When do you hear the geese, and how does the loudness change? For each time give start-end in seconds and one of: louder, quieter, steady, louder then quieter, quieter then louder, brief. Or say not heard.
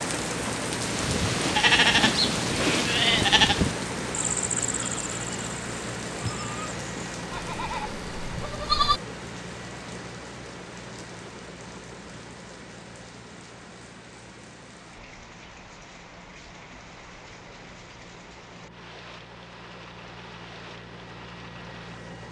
not heard.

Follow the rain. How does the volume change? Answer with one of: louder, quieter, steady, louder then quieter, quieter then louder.
quieter.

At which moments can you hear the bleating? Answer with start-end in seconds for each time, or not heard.
0.8-9.0.